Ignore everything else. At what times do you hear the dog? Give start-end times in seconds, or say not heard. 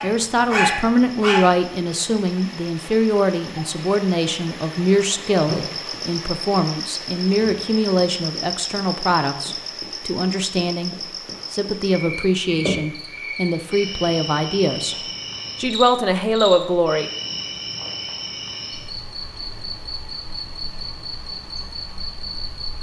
0.0-1.5.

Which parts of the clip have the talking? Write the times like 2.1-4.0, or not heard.
0.0-17.1.